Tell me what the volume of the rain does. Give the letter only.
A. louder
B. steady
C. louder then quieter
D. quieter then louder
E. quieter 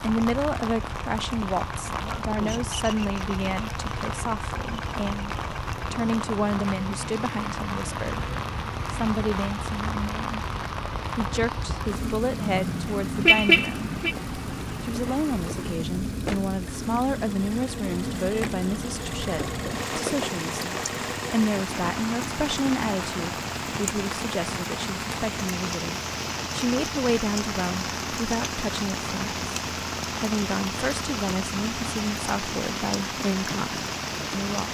B.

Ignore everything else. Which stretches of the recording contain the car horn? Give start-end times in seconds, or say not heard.
12.6-14.2.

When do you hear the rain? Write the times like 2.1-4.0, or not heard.
0.0-34.6.